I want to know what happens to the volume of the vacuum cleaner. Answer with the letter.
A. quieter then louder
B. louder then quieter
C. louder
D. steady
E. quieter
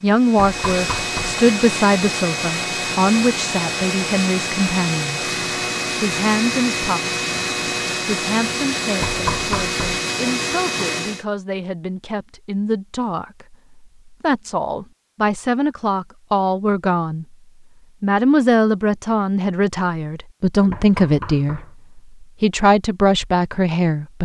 D.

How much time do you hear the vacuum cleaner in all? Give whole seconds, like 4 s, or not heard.
11 s.